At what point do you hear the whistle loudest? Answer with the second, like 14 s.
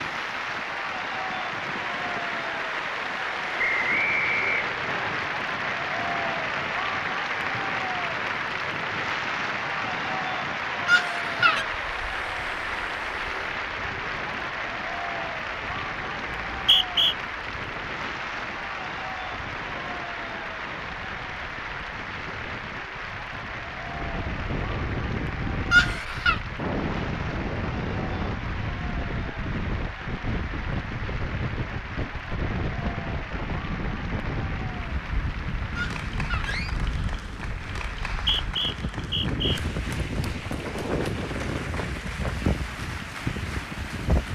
17 s.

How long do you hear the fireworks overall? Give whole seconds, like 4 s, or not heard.
not heard.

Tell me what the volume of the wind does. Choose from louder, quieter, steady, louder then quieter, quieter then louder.
louder.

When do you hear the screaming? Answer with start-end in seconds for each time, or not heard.
10.8-11.7, 25.7-26.4, 35.8-36.8.